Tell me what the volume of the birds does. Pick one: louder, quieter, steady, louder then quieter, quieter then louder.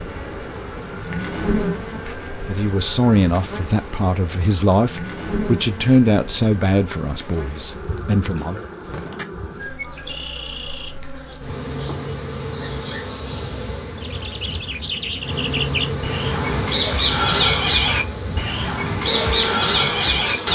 louder.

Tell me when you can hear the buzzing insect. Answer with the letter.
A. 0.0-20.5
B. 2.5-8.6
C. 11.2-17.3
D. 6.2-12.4
A.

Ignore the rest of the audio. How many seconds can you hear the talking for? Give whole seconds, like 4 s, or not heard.
6 s.